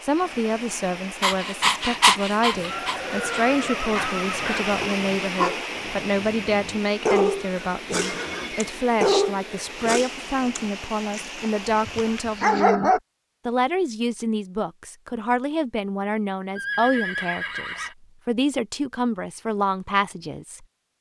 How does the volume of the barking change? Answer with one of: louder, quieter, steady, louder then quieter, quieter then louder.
quieter then louder.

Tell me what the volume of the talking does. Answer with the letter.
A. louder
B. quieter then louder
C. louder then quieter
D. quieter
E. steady
E.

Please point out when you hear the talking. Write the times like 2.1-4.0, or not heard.
0.0-20.6.